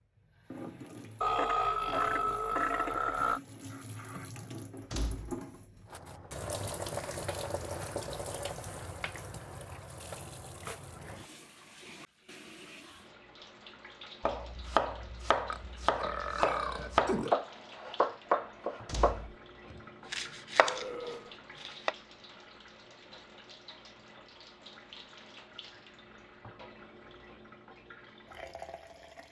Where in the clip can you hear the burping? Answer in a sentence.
The burping can be heard from 1.2 to 3.4 s, from 15.5 to 17.4 s and from 20.6 to 21.4 s.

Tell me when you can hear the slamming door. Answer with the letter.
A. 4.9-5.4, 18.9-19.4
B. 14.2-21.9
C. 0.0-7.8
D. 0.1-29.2
A.